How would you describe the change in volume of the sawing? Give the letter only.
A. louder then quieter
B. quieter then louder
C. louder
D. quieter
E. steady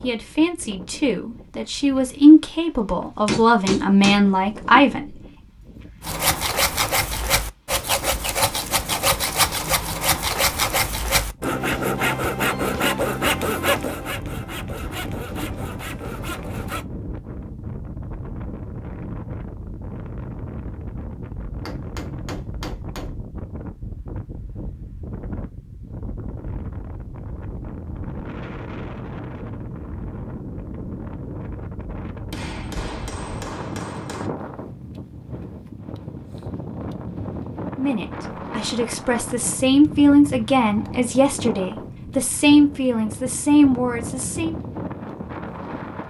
D.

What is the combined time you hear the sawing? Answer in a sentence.
The sawing can be heard for 11 seconds in total.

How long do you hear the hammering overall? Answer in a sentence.
You can hear the hammering for 5 seconds altogether.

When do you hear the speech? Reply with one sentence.
The speech can be heard from 0.0 to 5.2 s and from 37.8 to 44.5 s.